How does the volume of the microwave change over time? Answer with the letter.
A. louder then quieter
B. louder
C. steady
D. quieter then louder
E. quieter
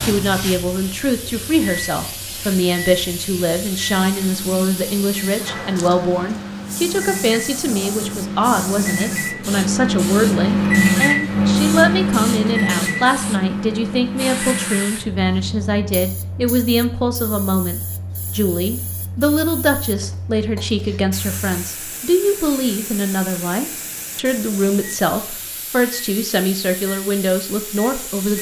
A.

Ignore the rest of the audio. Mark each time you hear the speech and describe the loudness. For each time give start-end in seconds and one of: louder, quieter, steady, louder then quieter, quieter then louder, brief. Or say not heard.
0.0-28.3 steady.